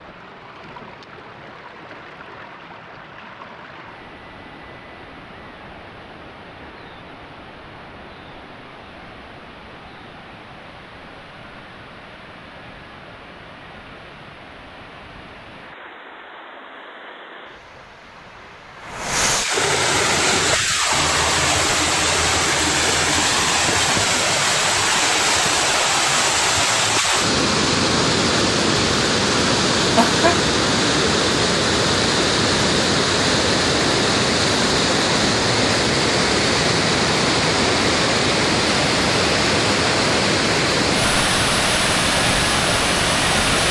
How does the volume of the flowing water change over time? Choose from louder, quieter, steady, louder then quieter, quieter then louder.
louder.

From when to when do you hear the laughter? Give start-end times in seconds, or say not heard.
29.9-30.4.